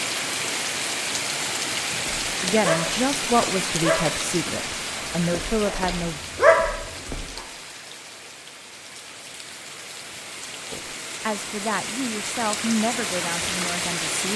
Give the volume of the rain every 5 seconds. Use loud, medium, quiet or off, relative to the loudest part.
loud, medium, loud.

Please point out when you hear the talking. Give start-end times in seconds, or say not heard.
2.4-6.2, 10.7-14.3.